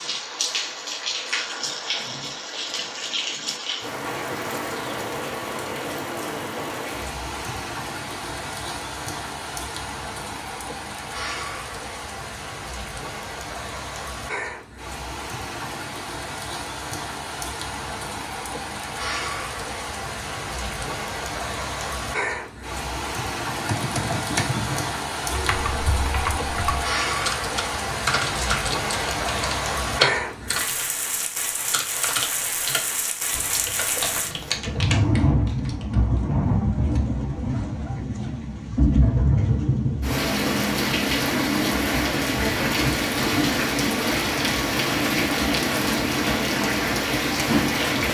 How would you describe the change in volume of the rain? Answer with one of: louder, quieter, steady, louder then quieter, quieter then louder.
louder.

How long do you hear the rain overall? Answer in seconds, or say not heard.
48 s.